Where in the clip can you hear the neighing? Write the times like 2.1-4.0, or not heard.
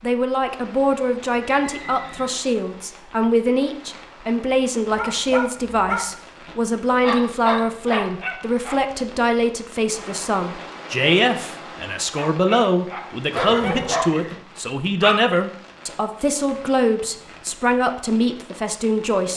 1.3-2.4, 13.3-14.3.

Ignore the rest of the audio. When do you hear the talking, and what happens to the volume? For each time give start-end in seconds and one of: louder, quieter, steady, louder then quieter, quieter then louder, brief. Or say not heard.
0.0-19.3 steady.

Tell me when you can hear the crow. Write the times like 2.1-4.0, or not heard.
not heard.